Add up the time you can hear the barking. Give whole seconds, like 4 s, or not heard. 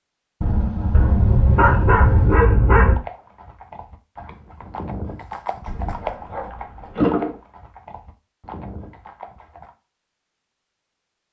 4 s.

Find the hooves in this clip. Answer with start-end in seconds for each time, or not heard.
2.8-9.7.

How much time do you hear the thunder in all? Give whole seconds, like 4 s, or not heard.
2 s.